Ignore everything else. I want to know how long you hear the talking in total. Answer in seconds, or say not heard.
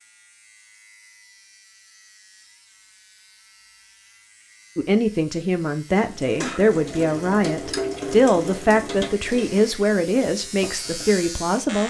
7 s.